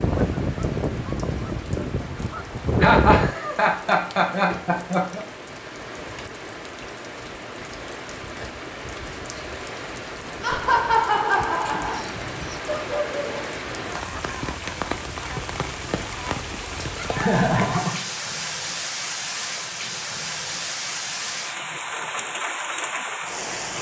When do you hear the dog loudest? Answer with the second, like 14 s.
13 s.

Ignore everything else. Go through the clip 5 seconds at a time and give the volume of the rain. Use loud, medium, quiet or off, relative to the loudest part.
medium, medium, loud, loud, loud.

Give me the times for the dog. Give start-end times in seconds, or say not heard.
11.7-13.5.